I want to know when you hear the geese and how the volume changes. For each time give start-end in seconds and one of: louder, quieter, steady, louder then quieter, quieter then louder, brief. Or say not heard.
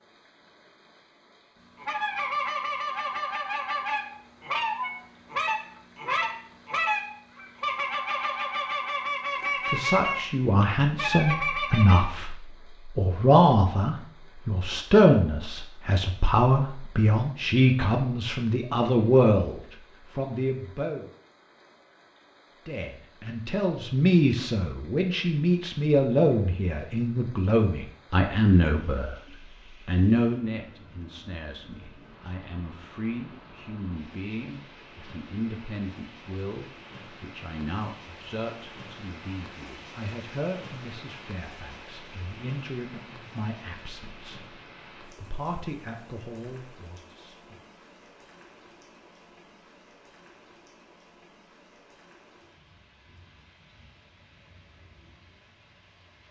1.8-12.0 steady.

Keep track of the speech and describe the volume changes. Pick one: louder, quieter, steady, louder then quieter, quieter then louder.
quieter.